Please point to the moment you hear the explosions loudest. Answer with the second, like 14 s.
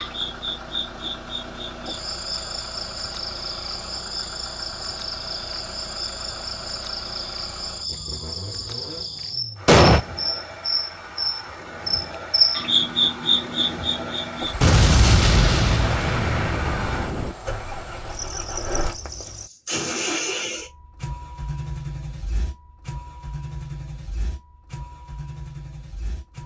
10 s.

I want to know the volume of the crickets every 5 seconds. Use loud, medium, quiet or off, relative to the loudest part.
medium, medium, loud, quiet, off, off.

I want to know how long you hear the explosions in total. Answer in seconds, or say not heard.
3 s.